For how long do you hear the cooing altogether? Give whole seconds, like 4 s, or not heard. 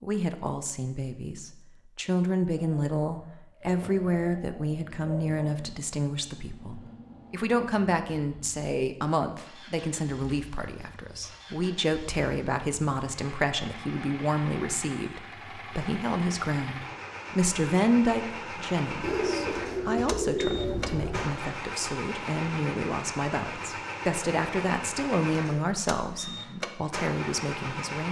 5 s.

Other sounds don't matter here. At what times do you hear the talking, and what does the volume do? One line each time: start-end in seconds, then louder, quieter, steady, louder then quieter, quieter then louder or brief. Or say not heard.
0.0-28.0 steady.